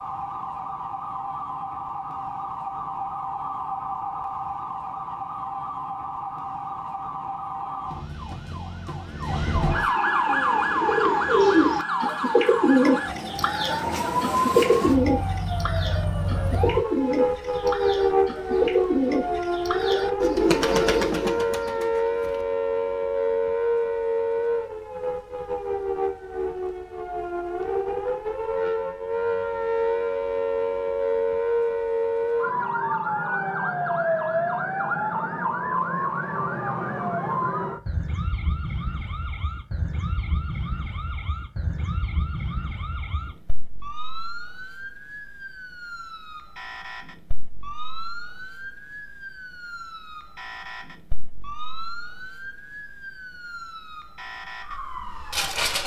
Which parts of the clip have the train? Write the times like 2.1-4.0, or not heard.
not heard.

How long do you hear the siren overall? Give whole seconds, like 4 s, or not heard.
56 s.